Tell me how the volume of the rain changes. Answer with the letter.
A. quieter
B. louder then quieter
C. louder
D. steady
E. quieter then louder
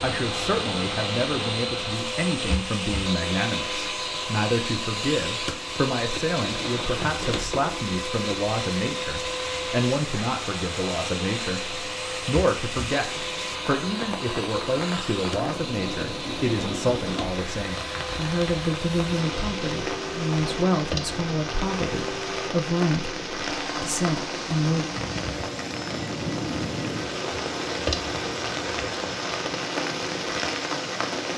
C.